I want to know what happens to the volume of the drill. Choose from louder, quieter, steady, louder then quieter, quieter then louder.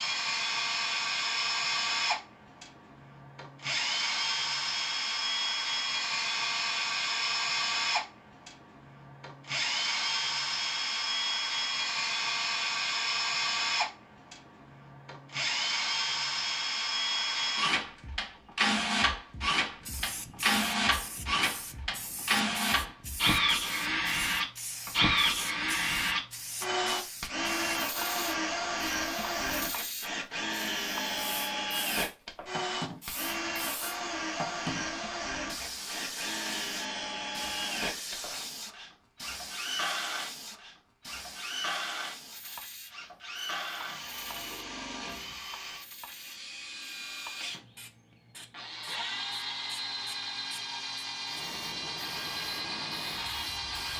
quieter.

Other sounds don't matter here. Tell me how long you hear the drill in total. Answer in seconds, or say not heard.
54 s.